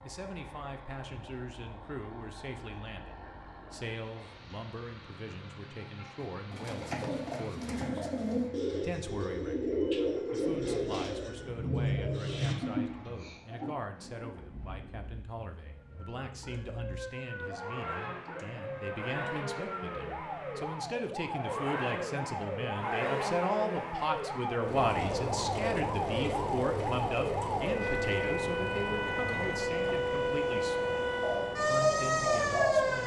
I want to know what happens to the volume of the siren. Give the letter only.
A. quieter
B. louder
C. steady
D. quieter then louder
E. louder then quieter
B.